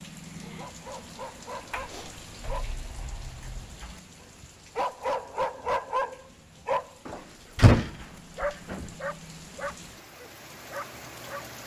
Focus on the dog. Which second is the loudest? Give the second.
6 s.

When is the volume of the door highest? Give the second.
8 s.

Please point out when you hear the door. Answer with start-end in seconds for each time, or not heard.
1.7-3.9, 7.0-8.9.